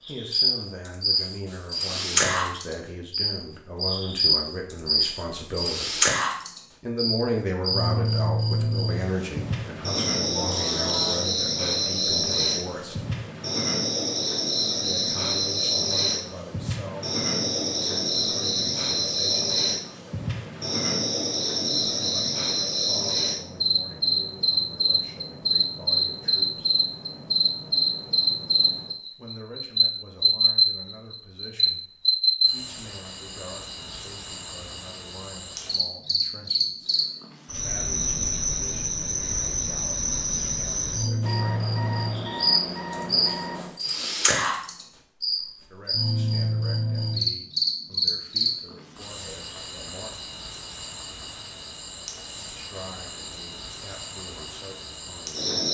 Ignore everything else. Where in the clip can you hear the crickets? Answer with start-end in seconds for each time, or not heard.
0.1-55.6.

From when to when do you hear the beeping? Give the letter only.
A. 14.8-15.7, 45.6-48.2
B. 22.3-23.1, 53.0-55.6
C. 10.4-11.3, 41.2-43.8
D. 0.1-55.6
C.